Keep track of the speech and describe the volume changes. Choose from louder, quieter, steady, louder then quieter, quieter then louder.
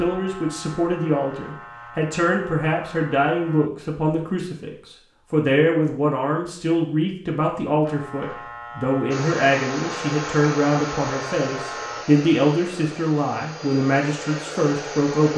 steady.